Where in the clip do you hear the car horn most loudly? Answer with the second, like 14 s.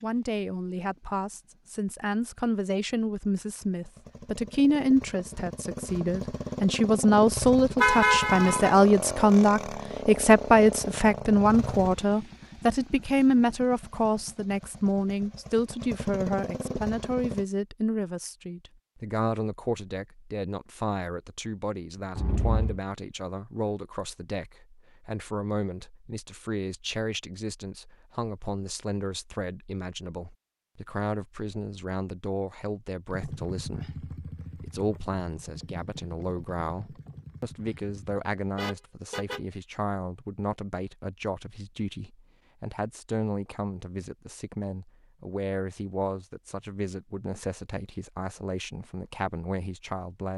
8 s.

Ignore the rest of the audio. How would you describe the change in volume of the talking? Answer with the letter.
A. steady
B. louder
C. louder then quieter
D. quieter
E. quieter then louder
D.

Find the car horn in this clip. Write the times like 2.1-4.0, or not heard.
7.8-8.8, 22.1-22.8, 38.5-39.4.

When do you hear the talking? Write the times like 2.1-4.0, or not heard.
0.0-50.3.